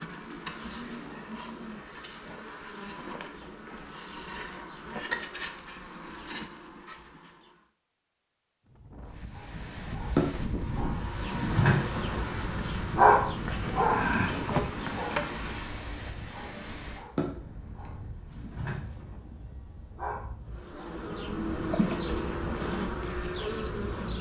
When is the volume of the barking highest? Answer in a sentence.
The loudest moment of the barking is at 13 seconds.